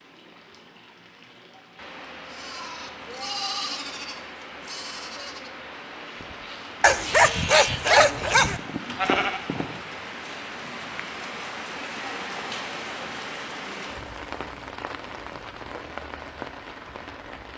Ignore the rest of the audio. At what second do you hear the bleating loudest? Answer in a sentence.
The loudest moment of the bleating is at 9 seconds.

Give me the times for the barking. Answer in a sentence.
The barking can be heard from 6.8 to 8.6 s.